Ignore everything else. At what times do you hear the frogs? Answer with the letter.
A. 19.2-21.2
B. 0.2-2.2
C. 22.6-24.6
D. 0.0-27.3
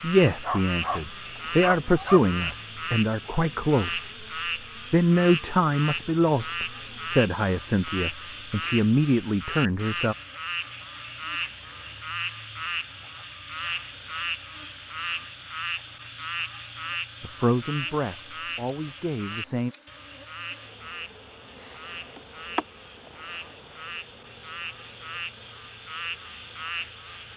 D.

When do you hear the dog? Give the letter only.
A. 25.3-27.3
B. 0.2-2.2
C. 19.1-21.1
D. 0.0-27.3
B.